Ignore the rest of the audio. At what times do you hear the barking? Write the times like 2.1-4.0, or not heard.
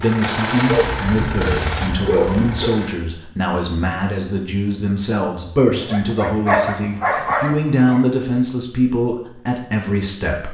0.7-2.8, 5.7-8.0.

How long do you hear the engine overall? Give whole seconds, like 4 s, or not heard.
3 s.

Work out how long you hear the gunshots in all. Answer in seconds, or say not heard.
2 s.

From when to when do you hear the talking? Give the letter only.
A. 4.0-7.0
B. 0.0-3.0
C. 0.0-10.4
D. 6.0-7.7
C.